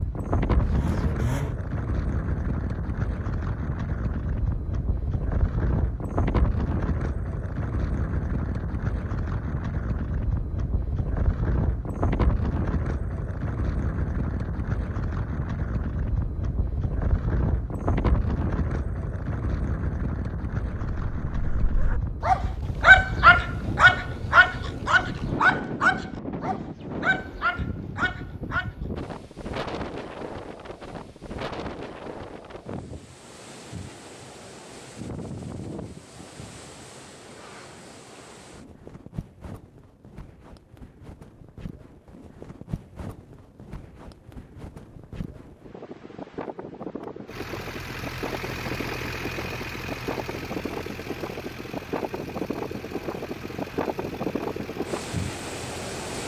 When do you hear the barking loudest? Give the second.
23 s.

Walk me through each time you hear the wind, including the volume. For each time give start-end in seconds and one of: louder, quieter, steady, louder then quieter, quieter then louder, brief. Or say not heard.
0.0-56.2 quieter then louder.